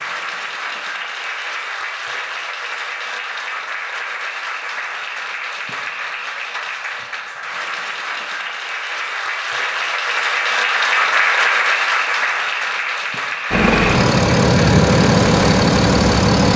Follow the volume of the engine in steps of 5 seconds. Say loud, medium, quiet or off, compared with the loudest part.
off, off, loud, loud.